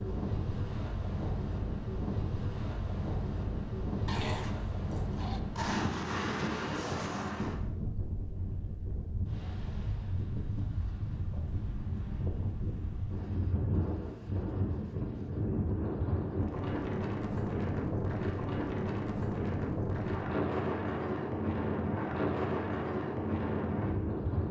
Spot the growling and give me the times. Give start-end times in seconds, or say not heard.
4.0-5.4.